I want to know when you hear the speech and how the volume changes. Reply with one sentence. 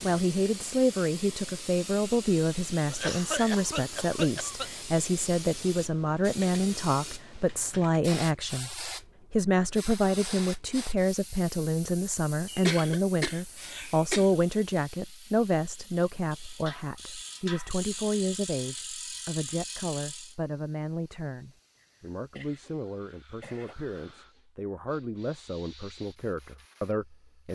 You can hear the speech from 0.0 to 27.5 s, getting quieter.